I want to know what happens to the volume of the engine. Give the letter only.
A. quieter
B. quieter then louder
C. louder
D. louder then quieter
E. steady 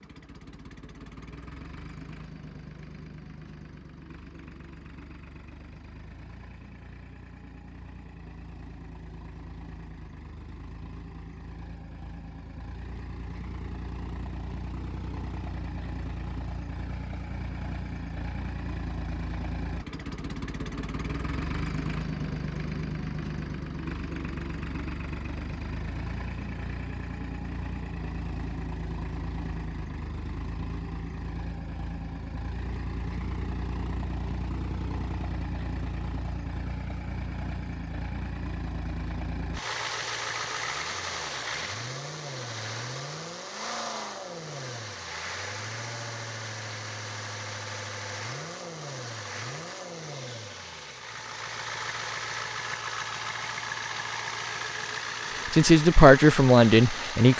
C.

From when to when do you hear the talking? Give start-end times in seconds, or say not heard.
55.5-57.3.